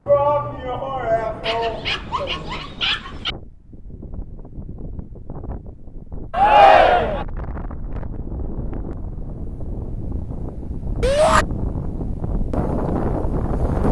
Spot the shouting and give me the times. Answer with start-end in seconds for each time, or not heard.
0.1-2.4, 6.3-7.2, 11.0-11.4.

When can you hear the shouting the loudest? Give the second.
7 s.